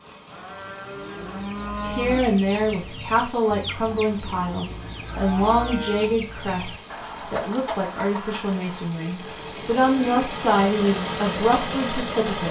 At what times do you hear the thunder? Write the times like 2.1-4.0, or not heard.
not heard.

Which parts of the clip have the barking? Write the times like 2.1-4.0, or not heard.
not heard.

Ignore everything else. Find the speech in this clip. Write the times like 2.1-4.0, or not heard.
1.8-12.4.